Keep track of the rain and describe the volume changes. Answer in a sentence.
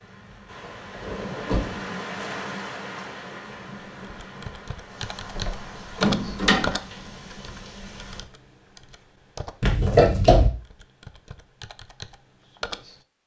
The loudness of the rain goes down.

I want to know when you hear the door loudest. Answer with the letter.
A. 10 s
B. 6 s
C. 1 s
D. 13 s
A.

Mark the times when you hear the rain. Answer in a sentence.
You can hear the rain from 0.0 to 8.2 s.